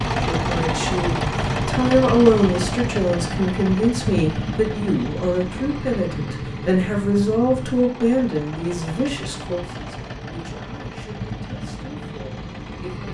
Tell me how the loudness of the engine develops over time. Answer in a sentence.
The volume of the engine goes down.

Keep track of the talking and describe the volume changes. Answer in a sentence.
The loudness of the talking goes down.